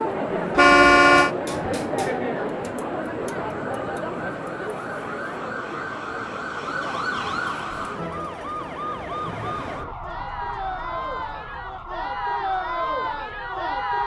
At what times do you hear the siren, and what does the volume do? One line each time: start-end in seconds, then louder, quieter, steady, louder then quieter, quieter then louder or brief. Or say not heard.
0.0-14.0 louder then quieter.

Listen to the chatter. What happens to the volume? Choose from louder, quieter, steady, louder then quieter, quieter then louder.
quieter then louder.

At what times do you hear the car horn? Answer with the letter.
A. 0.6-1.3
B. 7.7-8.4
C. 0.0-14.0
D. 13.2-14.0
A.